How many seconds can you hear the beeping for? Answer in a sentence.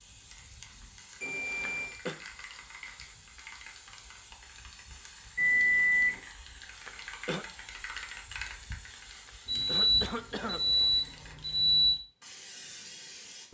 You can hear the beeping for 4 seconds altogether.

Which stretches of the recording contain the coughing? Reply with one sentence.
The coughing can be heard from 1.5 to 2.1 s, from 6.7 to 7.5 s and from 9.2 to 10.6 s.